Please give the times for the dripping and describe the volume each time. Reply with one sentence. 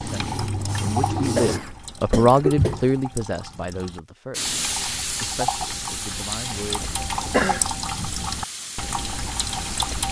The dripping can be heard from 0.0 to 10.0 s, getting quieter then louder.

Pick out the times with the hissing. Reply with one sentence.
You can hear the hissing from 0.0 to 1.6 s and from 4.3 to 10.0 s.